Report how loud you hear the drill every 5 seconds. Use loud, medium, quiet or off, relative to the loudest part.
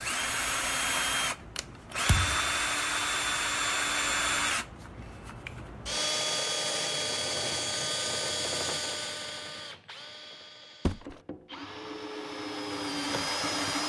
loud, loud, medium.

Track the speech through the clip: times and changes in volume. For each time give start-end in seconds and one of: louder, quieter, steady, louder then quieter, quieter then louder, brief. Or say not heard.
not heard.